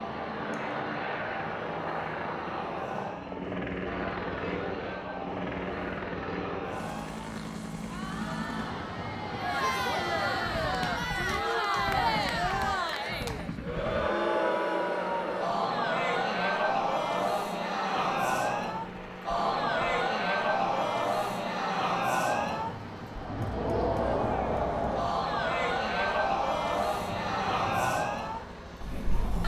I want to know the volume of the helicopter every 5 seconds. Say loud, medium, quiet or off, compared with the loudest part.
loud, loud, medium, medium, medium, medium.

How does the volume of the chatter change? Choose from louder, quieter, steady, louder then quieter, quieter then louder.
louder.